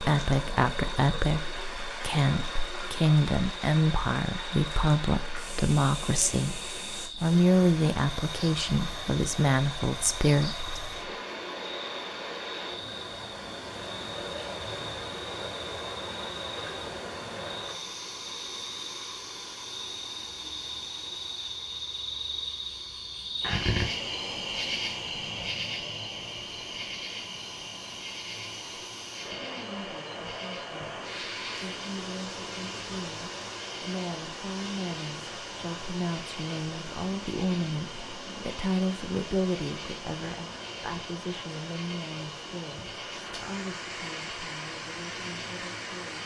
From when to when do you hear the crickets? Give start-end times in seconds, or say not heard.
0.1-46.2.